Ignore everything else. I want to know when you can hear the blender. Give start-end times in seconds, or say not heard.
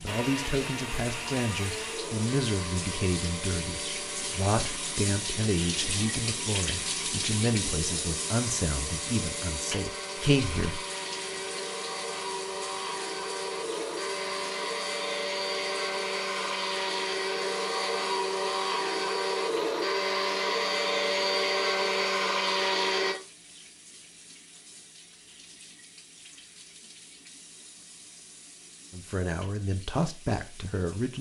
0.0-23.1.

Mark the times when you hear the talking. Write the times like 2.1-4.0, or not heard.
0.0-10.8, 28.9-31.1.